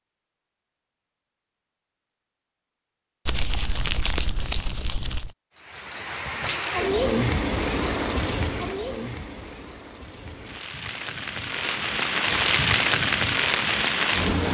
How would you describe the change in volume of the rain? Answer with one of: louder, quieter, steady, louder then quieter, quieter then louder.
quieter then louder.